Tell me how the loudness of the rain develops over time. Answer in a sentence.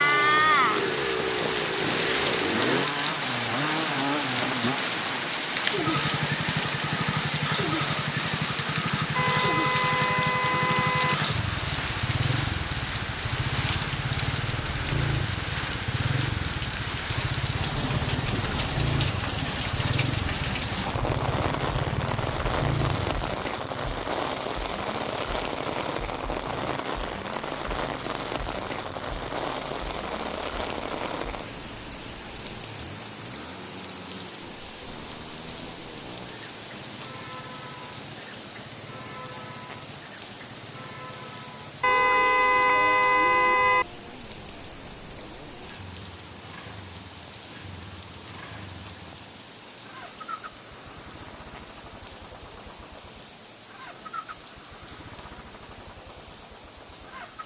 The loudness of the rain goes down.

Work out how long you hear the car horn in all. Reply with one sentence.
You can hear the car horn for 4 seconds altogether.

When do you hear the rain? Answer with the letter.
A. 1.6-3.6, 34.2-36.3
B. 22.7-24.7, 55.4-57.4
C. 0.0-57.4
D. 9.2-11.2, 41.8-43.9
C.